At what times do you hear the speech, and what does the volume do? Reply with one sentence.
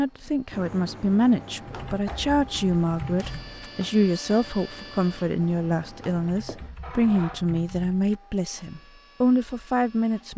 The speech can be heard from 0.0 to 10.3 s, at a steady volume.